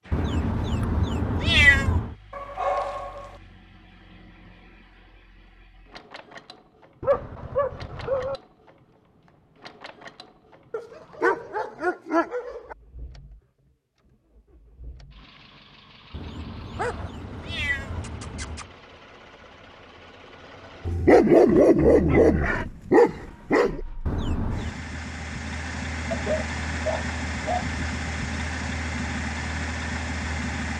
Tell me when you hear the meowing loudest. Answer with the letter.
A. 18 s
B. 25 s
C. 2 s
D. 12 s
C.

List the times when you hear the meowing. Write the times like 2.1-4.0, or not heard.
0.1-2.1, 16.1-18.7, 24.1-24.8.